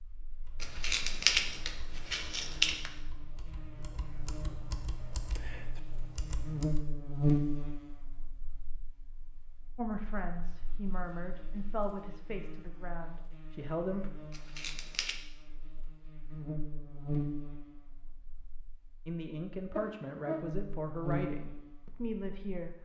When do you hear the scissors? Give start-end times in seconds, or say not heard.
0.6-2.9, 14.3-15.2.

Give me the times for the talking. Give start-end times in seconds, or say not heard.
9.8-14.1, 19.1-22.8.